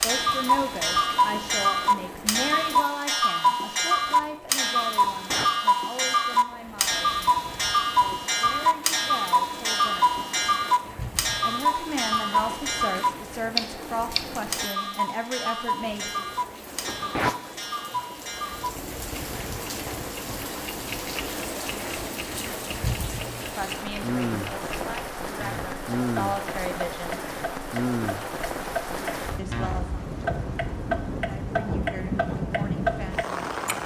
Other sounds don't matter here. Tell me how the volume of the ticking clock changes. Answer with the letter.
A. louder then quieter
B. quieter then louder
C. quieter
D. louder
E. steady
B.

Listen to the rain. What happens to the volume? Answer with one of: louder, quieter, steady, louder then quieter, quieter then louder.
louder.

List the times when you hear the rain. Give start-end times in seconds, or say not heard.
0.0-33.8.